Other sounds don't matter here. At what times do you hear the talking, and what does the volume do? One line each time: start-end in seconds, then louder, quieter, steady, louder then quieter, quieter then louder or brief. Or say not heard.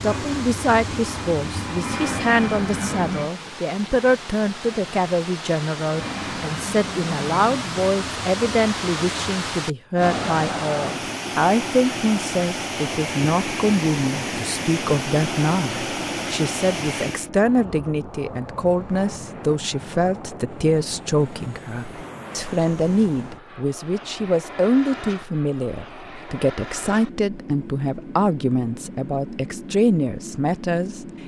0.0-31.2 steady.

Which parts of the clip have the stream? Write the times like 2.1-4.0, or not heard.
0.0-17.3.